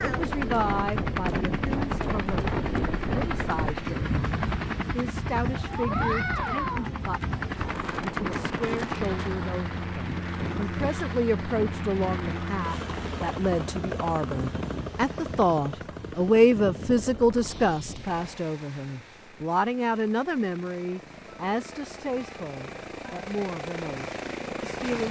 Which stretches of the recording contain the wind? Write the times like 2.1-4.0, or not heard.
0.0-18.4.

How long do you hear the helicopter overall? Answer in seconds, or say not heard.
25 s.